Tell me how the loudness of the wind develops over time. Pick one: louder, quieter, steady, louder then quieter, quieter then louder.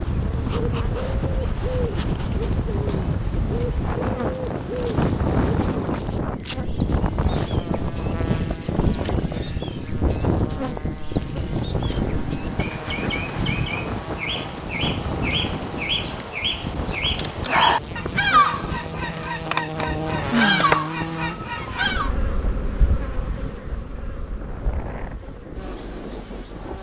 quieter.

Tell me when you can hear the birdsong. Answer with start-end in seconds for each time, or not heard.
0.0-22.1.